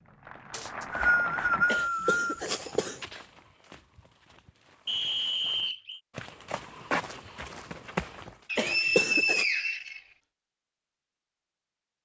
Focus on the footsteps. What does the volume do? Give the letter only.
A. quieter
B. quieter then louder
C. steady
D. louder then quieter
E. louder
B.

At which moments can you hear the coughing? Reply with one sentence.
You can hear the coughing from 1.6 to 3.0 s and from 8.6 to 9.4 s.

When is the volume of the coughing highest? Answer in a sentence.
The volume of the coughing peaks at 9 seconds.